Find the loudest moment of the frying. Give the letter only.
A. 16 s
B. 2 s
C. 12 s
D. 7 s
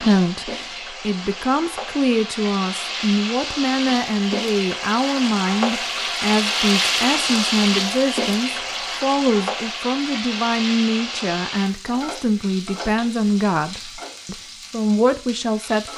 D.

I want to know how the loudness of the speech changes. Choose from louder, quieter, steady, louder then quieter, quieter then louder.
steady.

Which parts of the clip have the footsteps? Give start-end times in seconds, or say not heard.
not heard.